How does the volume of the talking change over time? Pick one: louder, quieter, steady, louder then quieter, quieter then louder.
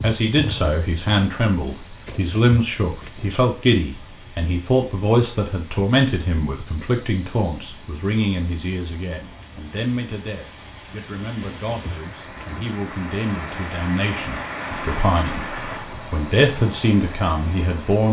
quieter then louder.